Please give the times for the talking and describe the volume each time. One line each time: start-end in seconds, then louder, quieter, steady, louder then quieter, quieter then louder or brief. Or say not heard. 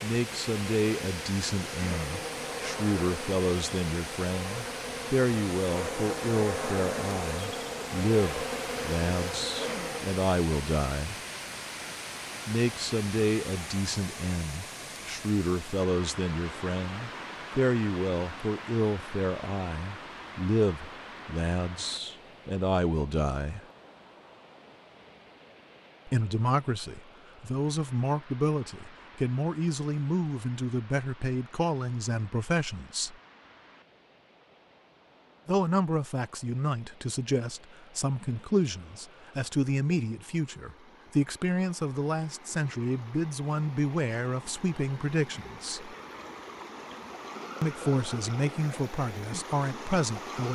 0.0-11.2 steady
12.4-23.6 steady
26.1-33.1 steady
35.5-46.0 steady
47.6-50.4 brief.